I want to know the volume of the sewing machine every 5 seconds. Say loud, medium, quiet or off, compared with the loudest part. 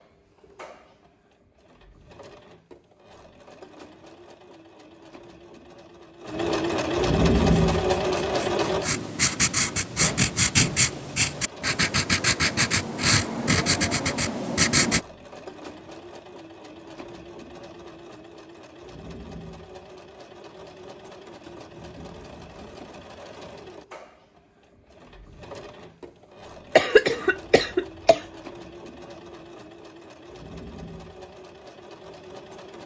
quiet, loud, quiet, quiet, quiet, quiet, quiet.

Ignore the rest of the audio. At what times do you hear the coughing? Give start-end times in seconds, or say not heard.
26.8-28.2.